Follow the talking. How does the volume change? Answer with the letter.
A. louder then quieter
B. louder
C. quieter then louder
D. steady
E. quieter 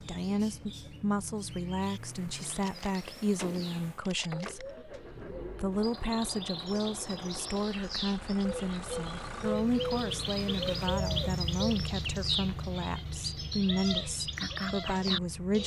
D.